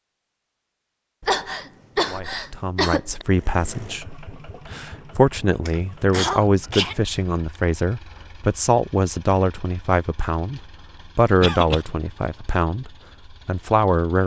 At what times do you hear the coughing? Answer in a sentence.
You can hear the coughing from 1.2 to 3.2 s, from 5.7 to 7.0 s and from 11.4 to 11.8 s.